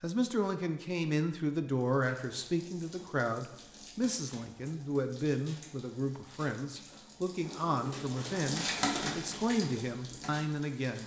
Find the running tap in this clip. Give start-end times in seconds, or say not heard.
1.7-11.0.